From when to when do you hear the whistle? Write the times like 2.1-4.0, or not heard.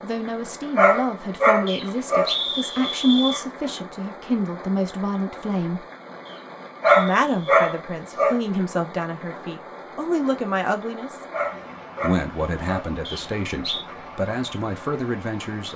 1.6-3.4, 6.2-7.7, 13.1-13.8.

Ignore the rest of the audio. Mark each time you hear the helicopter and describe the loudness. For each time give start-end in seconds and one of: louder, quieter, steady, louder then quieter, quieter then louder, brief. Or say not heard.
not heard.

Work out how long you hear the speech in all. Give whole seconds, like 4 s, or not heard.
14 s.